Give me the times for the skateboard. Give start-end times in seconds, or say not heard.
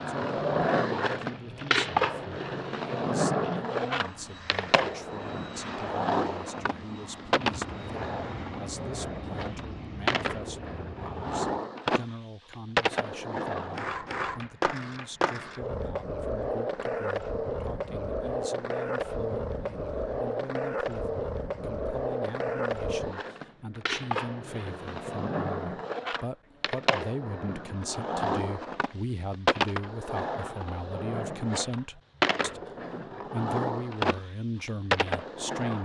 0.0-35.8.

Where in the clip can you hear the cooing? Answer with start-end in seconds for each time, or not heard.
not heard.